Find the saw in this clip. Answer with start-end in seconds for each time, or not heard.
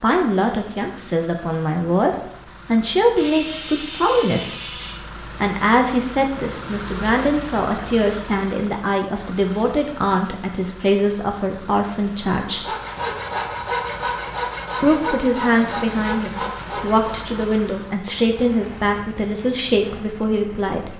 12.3-17.3.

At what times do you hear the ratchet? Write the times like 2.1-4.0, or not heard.
3.1-5.0.